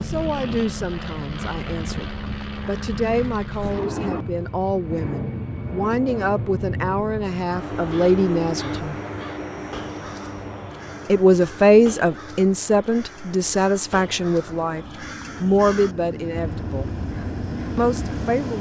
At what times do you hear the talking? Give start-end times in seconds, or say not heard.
0.0-8.9, 11.1-16.9, 17.8-18.5.